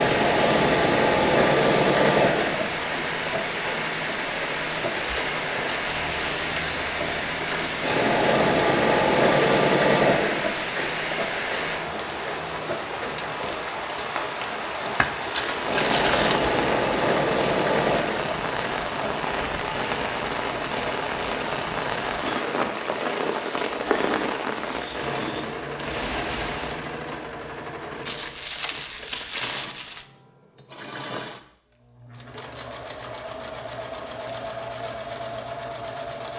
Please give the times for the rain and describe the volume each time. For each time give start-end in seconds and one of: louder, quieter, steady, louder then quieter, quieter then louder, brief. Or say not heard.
0.0-26.9 steady.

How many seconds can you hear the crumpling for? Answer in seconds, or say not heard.
5 s.